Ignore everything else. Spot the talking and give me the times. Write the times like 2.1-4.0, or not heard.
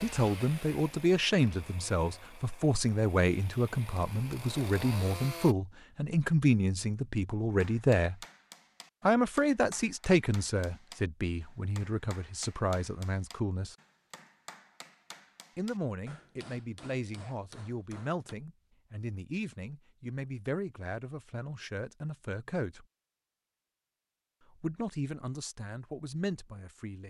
0.0-8.2, 9.1-13.8, 15.6-22.9, 24.5-27.0.